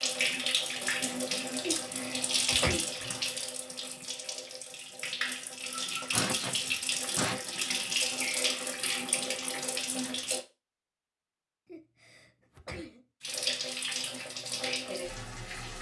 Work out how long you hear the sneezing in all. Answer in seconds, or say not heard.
4 s.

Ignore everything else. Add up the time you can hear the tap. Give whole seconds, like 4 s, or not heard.
13 s.